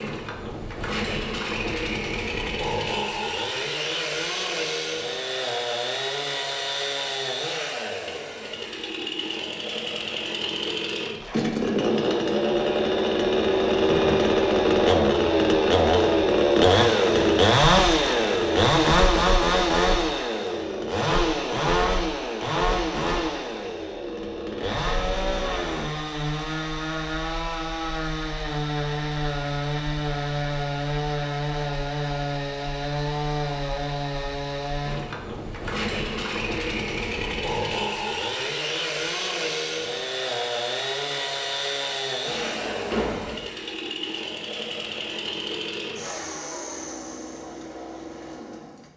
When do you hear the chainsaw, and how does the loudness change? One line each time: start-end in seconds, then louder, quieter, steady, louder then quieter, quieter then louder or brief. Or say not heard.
0.0-48.9 louder then quieter.